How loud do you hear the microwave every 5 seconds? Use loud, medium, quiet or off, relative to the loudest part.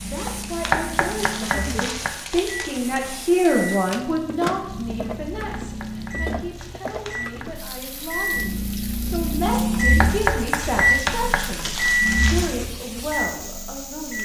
medium, loud, loud.